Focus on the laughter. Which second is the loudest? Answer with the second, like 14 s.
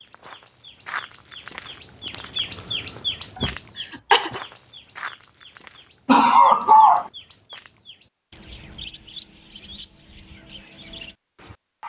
7 s.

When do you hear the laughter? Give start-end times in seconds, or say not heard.
3.4-4.4, 6.0-7.1.